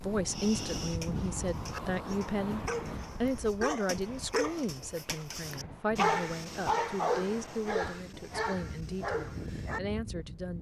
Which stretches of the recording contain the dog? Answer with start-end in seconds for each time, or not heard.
0.2-9.8.